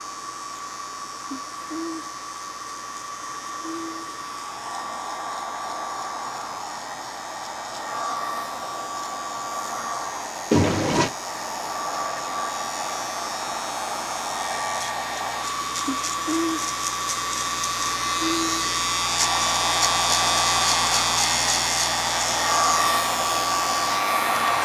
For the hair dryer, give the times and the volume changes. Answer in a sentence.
The hair dryer can be heard from 0.0 to 24.6 s, getting louder.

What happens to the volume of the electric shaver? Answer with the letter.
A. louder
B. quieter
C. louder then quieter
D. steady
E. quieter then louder
A.